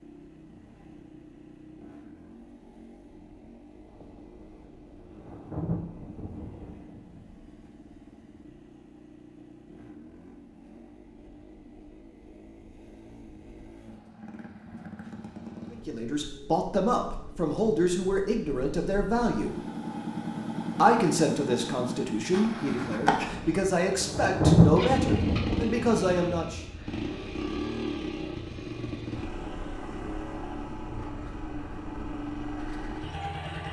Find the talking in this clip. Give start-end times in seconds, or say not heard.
15.7-19.6, 20.8-26.6.